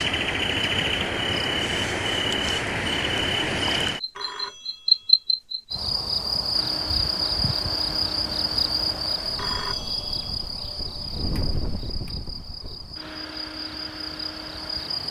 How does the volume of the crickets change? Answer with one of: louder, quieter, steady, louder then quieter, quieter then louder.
quieter.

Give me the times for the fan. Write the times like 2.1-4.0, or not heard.
6.5-15.0.